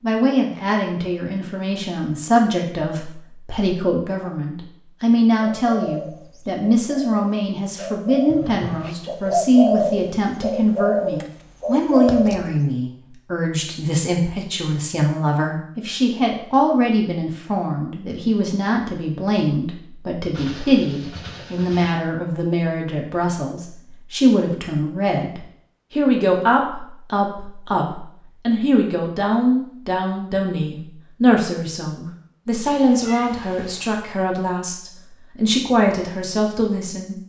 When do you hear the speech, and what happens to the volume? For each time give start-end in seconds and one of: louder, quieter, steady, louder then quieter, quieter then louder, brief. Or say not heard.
0.0-37.1 steady.